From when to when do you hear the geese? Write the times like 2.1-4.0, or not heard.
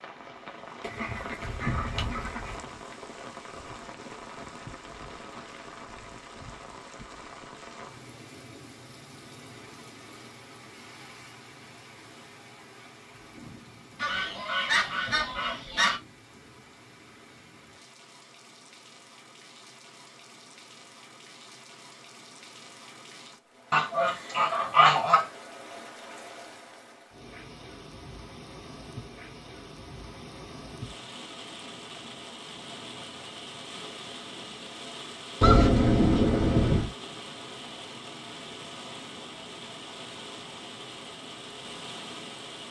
0.8-2.6, 13.9-16.0, 23.7-25.2, 35.4-36.9.